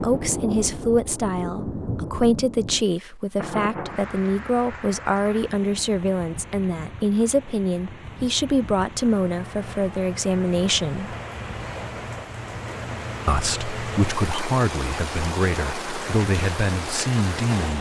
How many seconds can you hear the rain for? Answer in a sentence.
The rain can be heard for 18 seconds in total.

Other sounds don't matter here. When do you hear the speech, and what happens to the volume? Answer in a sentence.
The speech can be heard from 0.0 to 11.2 s, at a steady volume; and from 13.2 to 17.7 s, at a steady volume.